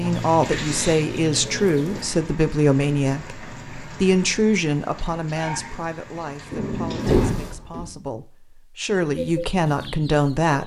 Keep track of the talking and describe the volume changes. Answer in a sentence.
The volume of the talking goes down, then up.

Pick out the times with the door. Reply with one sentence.
You can hear the door from 6.5 to 7.9 s.